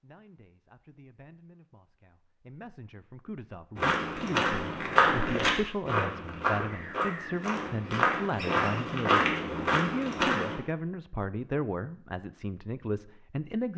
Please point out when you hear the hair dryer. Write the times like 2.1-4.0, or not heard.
not heard.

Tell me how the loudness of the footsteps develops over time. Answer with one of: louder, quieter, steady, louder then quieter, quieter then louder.
quieter then louder.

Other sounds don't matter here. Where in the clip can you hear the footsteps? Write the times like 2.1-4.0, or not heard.
3.8-10.6.